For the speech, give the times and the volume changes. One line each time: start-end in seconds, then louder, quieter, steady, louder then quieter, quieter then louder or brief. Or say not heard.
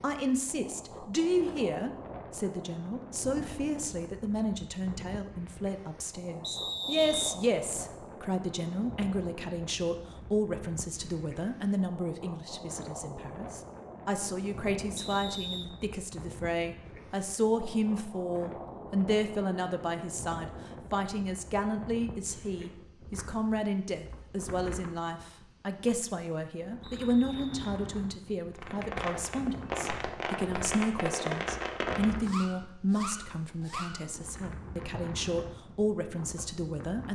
0.0-37.1 steady.